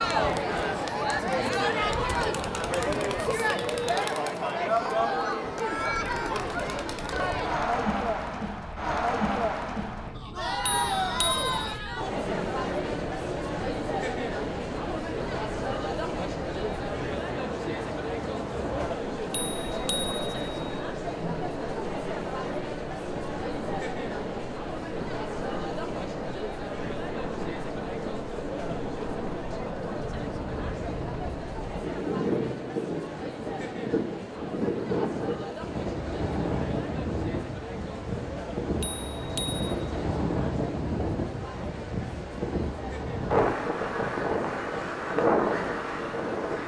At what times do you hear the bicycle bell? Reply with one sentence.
The bicycle bell can be heard from 10.6 to 11.8 s, from 19.3 to 20.8 s and from 38.8 to 39.6 s.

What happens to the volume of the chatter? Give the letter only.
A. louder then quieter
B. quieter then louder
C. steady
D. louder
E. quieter
E.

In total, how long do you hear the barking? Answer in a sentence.
The barking can't be heard in this clip.